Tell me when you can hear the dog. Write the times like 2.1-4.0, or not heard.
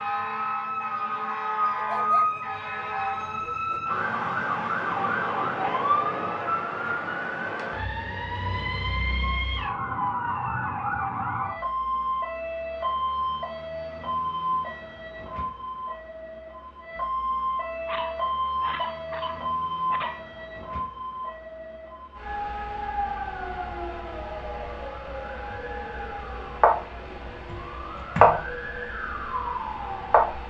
1.8-3.8, 17.9-20.4.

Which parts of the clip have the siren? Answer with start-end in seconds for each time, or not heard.
0.0-30.4.